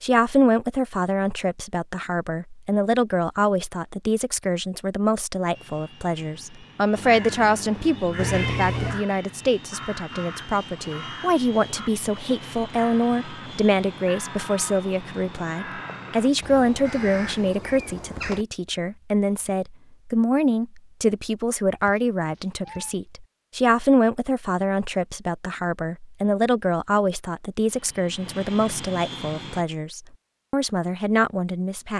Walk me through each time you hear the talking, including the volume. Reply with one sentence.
The talking can be heard from 0.0 to 31.9 s, at a steady volume.